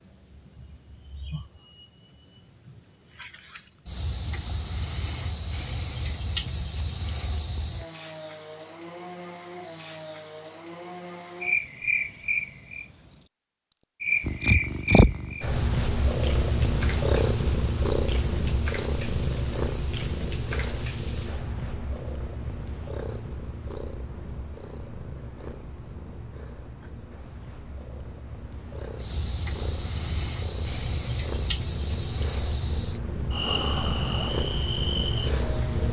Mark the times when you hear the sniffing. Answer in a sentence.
You can't hear the sniffing here.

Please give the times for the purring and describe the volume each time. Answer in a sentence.
You can hear the purring from 14.2 to 35.8 s, getting quieter then louder.